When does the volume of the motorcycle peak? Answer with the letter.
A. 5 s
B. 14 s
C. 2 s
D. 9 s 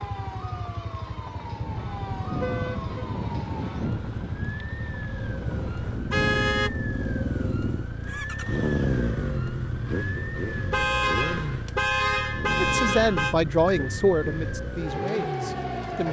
D.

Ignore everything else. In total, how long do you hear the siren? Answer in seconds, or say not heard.
16 s.